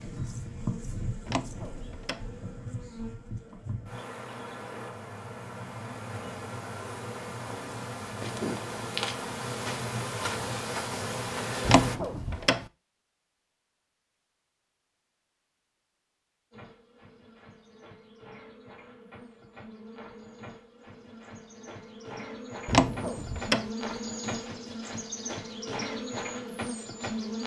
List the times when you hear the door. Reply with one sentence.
You can hear the door from 1.2 to 2.2 s, from 11.7 to 12.7 s and from 22.6 to 23.7 s.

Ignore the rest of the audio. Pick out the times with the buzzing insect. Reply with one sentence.
The buzzing insect can be heard from 0.0 to 12.0 s and from 16.5 to 27.4 s.